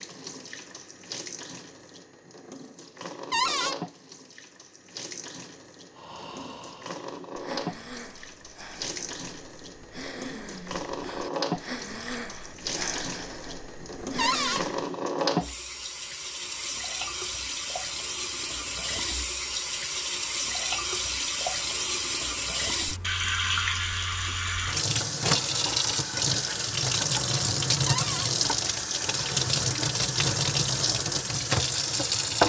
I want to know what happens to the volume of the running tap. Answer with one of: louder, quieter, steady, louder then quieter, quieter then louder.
louder.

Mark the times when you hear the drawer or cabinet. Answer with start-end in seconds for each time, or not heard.
3.3-3.8, 14.2-14.6, 27.9-28.3.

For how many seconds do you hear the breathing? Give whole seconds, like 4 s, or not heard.
9 s.